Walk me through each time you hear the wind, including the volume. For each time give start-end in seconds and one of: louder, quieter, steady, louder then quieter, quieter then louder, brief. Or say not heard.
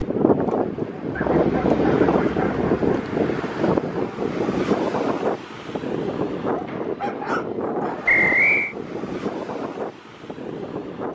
0.0-11.0 quieter.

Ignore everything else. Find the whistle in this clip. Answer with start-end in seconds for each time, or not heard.
8.1-8.8.